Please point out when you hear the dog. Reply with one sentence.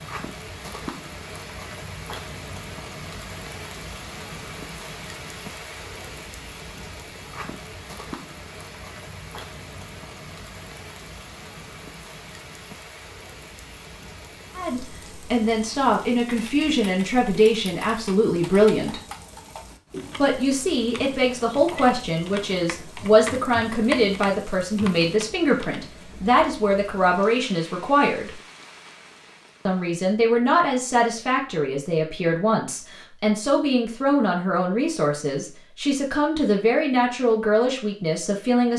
The dog can't be heard in this clip.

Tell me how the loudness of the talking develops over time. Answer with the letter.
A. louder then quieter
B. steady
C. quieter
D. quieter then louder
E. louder
B.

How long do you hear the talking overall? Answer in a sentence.
You can hear the talking for 22 seconds altogether.